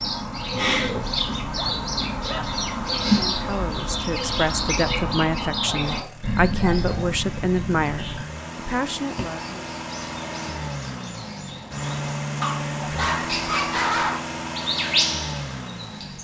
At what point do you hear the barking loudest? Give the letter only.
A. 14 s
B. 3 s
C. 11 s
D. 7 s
A.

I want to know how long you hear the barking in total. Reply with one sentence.
The barking can be heard for 4 seconds in total.